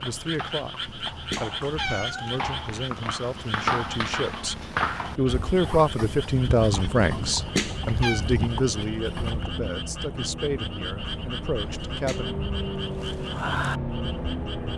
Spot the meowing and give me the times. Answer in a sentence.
The meowing can be heard from 0.8 to 2.4 s, from 7.1 to 8.2 s and from 11.6 to 12.2 s.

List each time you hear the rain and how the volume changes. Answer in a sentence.
You can't hear the rain here.